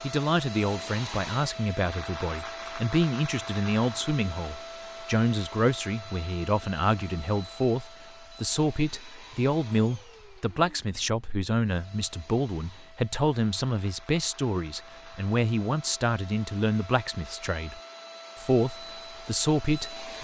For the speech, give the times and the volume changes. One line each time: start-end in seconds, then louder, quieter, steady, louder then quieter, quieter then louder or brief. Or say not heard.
0.0-20.1 steady.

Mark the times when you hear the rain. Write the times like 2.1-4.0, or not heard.
not heard.